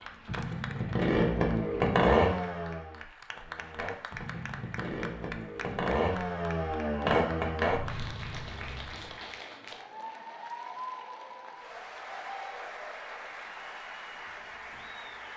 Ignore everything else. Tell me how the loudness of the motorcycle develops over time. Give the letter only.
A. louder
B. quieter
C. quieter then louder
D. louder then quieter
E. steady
C.